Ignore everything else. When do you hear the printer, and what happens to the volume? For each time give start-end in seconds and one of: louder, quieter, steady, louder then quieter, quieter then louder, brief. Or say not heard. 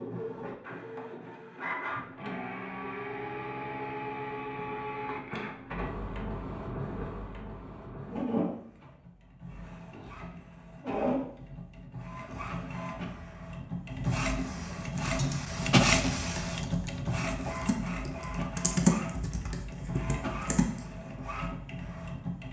0.0-22.4 louder then quieter.